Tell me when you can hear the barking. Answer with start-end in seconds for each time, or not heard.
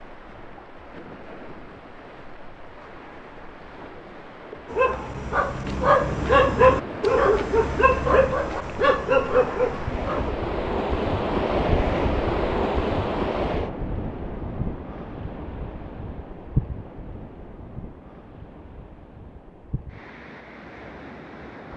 4.7-10.3.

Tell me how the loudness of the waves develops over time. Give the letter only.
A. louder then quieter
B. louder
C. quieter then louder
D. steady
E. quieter
A.